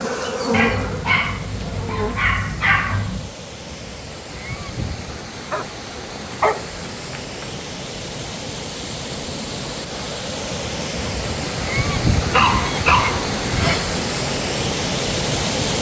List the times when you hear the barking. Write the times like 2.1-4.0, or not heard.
0.5-3.3, 5.5-7.5, 12.3-13.8.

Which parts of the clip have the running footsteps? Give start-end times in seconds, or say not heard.
not heard.